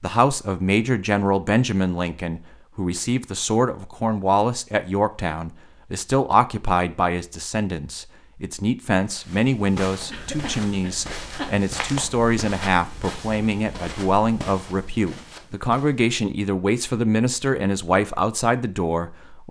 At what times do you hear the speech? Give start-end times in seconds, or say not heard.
0.0-19.4.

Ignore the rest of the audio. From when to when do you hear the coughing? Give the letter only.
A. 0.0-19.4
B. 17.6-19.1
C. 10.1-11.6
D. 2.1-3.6
C.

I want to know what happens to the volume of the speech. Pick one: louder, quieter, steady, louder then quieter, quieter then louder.
steady.